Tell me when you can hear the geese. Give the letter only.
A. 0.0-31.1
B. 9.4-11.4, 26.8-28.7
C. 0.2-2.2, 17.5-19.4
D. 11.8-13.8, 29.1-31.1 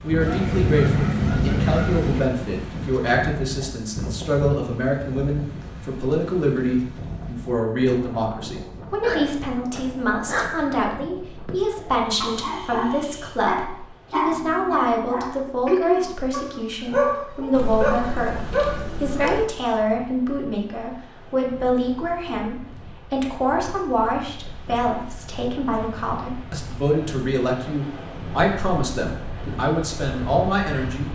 C.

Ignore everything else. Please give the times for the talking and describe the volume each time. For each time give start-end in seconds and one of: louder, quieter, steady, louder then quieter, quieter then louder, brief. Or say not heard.
0.0-31.1 steady.